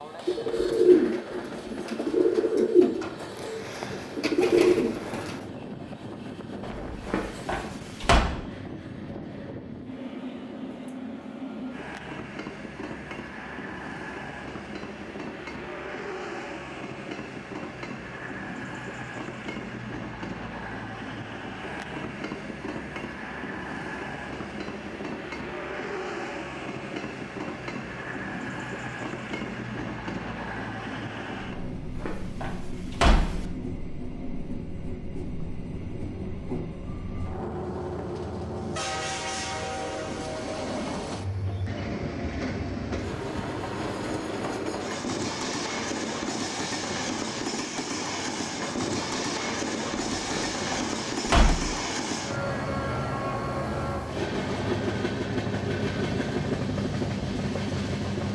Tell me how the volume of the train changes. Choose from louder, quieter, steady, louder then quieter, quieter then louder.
louder.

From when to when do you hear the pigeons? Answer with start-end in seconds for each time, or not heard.
0.2-5.4.